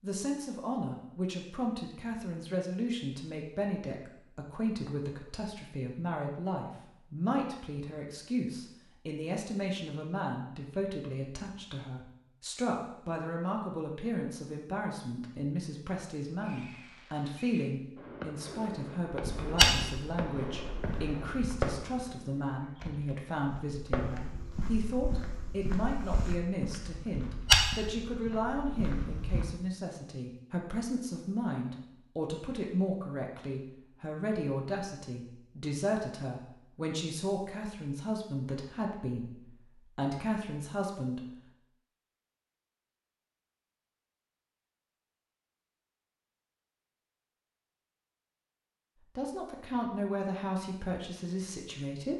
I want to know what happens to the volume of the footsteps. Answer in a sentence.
The volume of the footsteps goes down, then up.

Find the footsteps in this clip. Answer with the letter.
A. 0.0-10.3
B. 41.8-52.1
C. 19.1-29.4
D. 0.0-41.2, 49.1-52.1
C.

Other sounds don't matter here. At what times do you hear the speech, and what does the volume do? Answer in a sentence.
You can hear the speech from 0.0 to 41.2 s, at a steady volume; and briefly from 49.1 to 52.1 s.